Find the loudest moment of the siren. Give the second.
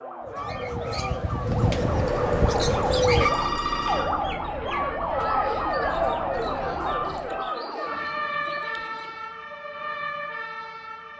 6 s.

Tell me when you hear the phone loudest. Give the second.
3 s.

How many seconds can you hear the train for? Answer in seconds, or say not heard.
6 s.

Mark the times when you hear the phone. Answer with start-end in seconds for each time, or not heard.
1.6-4.0.